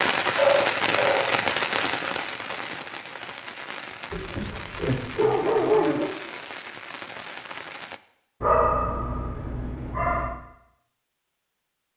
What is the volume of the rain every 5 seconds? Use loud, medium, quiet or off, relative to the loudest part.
loud, medium, off.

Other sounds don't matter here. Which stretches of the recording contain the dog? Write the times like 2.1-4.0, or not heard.
0.3-1.4, 4.1-6.1, 8.4-10.3.